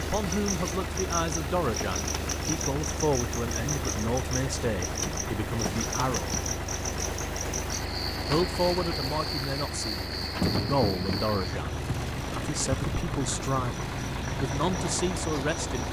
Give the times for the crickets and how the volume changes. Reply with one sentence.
You can hear the crickets from 0.0 to 15.8 s, at a steady volume.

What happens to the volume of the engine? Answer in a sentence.
The volume of the engine stays about the same.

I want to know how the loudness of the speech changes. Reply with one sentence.
The volume of the speech stays about the same.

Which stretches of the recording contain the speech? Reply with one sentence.
You can hear the speech from 0.0 to 6.3 s and from 8.2 to 15.8 s.